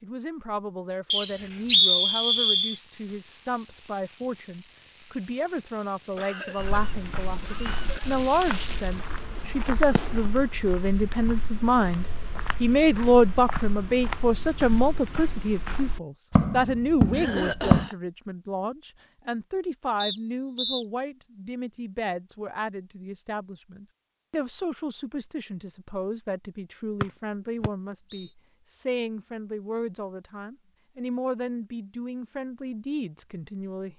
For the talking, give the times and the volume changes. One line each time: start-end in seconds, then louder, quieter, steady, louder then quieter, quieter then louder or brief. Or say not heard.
0.0-33.9 louder then quieter.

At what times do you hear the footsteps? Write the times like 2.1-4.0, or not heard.
6.5-17.9.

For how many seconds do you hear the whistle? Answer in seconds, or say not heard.
4 s.